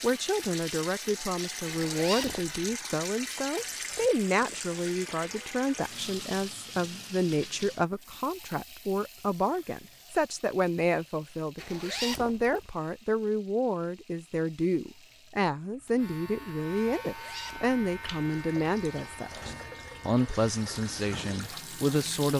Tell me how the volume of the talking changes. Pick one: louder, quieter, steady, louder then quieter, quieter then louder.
steady.